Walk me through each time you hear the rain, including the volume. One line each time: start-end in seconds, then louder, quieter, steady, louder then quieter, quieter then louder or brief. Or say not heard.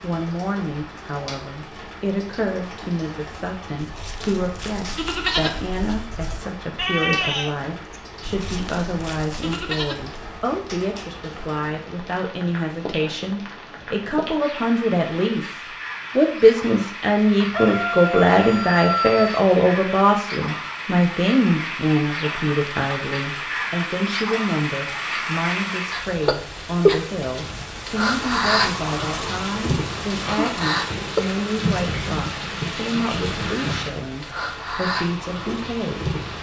0.0-36.3 louder.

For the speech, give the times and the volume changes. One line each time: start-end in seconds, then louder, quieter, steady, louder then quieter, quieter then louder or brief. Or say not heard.
0.0-36.0 louder then quieter.